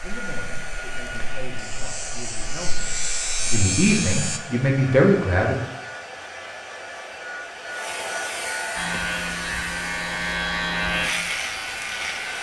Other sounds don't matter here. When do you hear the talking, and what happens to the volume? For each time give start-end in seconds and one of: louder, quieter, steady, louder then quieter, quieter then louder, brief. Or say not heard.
0.0-5.5 louder.